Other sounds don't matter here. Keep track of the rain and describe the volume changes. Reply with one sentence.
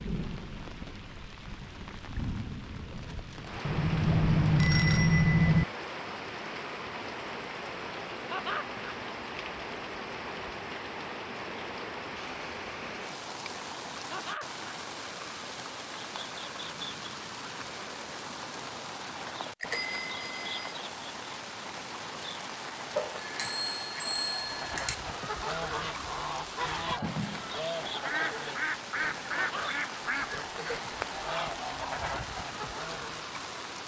The volume of the rain stays about the same.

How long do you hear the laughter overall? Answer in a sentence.
You can hear the laughter for 2 seconds altogether.